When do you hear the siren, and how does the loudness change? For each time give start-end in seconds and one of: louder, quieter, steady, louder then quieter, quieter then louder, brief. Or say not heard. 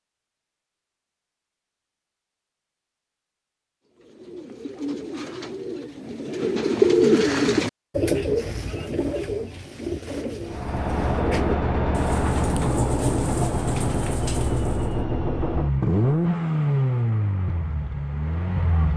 not heard.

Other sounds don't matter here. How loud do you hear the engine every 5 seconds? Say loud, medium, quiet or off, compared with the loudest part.
off, off, loud, loud.